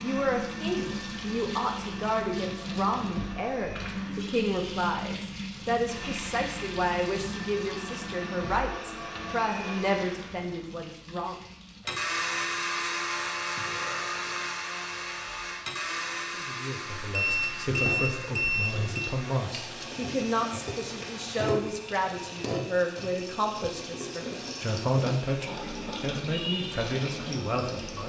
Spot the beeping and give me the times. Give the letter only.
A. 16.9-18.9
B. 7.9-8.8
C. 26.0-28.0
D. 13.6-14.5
A.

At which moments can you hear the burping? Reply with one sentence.
You can hear the burping from 13.6 to 14.5 s.